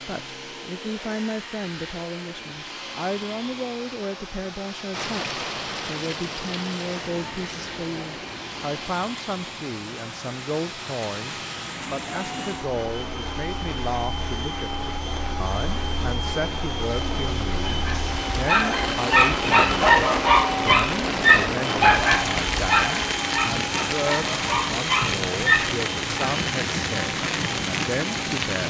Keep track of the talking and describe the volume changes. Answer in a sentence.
The volume of the talking stays about the same.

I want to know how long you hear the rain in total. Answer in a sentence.
The rain can be heard for 24 seconds in total.